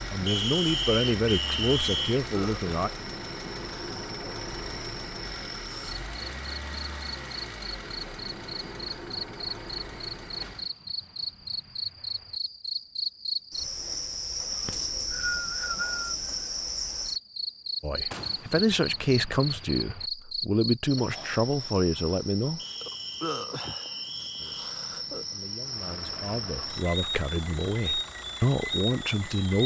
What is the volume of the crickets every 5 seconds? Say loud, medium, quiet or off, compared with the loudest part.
medium, medium, loud, loud, loud, loud.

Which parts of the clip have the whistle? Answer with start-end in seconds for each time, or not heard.
0.2-2.2, 14.7-16.1, 22.6-24.8.